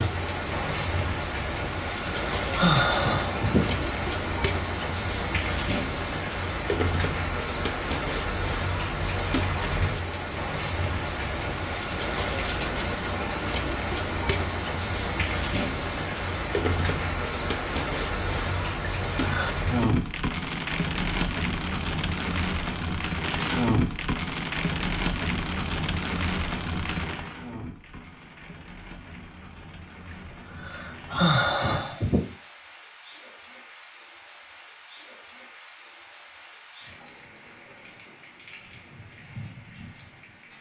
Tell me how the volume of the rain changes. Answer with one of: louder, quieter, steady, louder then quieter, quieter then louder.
quieter.